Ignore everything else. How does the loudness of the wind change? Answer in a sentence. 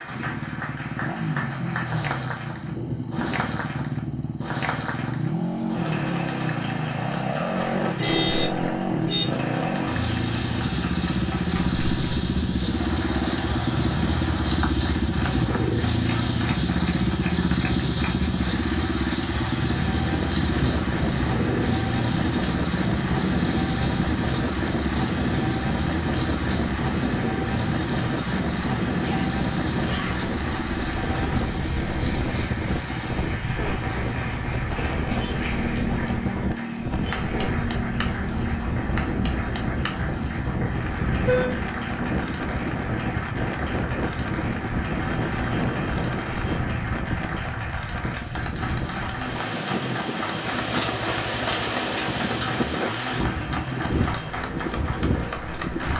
The loudness of the wind stays about the same.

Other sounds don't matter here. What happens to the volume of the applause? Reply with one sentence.
The loudness of the applause stays about the same.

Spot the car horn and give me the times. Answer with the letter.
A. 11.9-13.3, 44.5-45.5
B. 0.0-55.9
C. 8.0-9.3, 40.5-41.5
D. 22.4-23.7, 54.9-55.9
C.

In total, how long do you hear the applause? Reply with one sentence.
You can hear the applause for 56 seconds altogether.